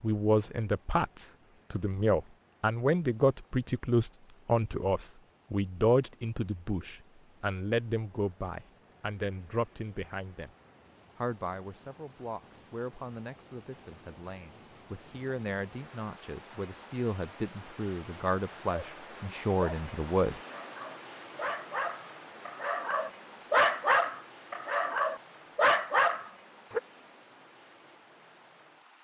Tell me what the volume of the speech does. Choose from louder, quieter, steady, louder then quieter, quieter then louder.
quieter then louder.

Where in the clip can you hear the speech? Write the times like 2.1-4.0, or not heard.
0.0-10.5, 11.2-20.4.